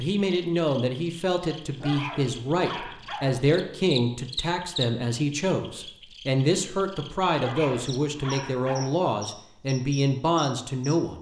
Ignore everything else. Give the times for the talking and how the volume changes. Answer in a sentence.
You can hear the talking from 0.0 to 11.1 s, at a steady volume.